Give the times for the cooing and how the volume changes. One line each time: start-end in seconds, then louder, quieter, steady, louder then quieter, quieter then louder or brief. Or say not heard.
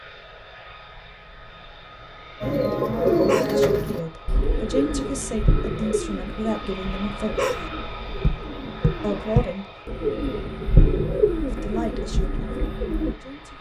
2.4-13.2 quieter then louder.